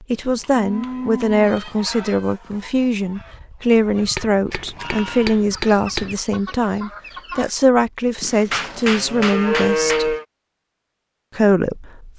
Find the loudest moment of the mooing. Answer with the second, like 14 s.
10 s.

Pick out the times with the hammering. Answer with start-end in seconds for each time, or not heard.
0.1-1.7, 4.2-6.1, 8.5-10.1.